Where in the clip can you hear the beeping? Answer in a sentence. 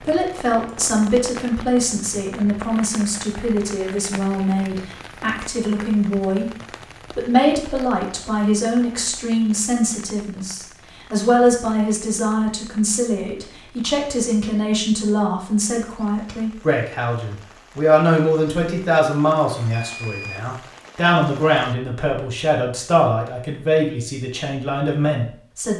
The beeping can be heard from 19.8 to 20.4 s.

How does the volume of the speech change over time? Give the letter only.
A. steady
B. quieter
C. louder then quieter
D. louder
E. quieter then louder
A.